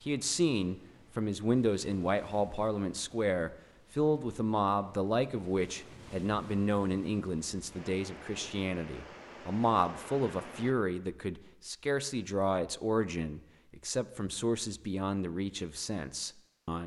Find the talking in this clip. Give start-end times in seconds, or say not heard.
0.1-16.8.